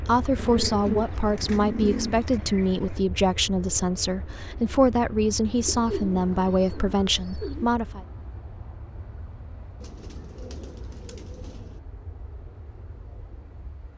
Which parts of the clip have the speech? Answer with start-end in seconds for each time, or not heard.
0.0-8.0.